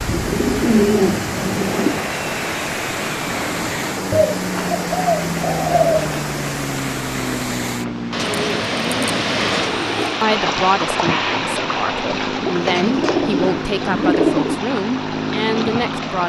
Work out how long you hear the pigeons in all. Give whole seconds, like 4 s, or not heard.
8 s.